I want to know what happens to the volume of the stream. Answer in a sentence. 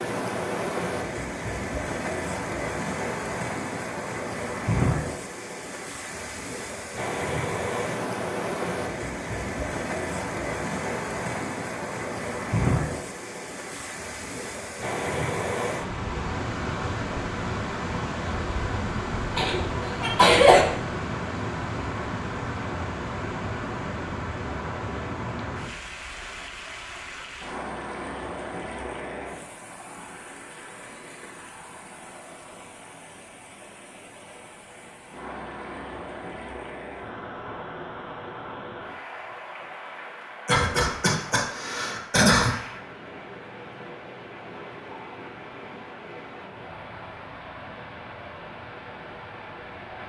The volume of the stream goes down.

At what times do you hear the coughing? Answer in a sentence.
The coughing can be heard from 19.4 to 20.6 s and from 40.5 to 42.5 s.